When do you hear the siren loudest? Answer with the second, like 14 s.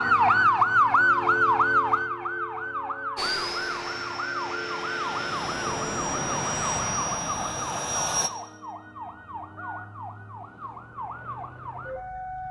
1 s.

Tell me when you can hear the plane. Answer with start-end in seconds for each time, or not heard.
3.1-8.3.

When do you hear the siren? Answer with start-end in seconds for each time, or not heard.
0.0-12.4.